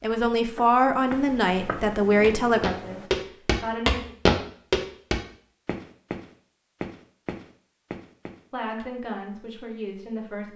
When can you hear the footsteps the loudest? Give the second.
4 s.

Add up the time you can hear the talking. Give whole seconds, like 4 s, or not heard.
6 s.